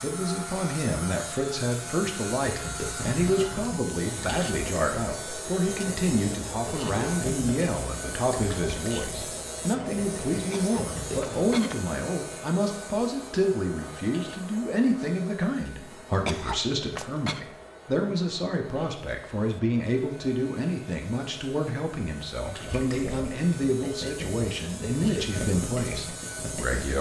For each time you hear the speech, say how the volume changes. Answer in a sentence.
The speech can be heard from 0.0 to 26.9 s, at a steady volume.